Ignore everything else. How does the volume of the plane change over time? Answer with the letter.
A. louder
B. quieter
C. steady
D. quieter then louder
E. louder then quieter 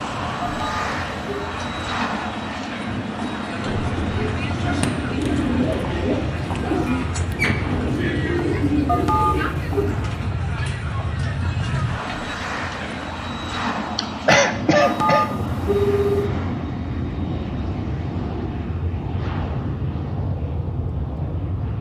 C.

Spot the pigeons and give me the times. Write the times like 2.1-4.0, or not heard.
3.6-10.3.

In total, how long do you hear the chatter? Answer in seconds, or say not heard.
13 s.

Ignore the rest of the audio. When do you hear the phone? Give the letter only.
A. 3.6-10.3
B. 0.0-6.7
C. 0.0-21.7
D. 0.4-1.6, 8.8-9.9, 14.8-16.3
D.